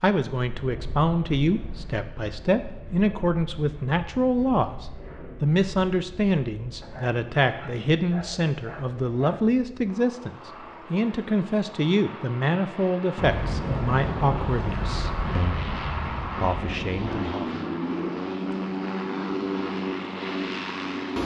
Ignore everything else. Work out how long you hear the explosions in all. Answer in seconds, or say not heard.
4 s.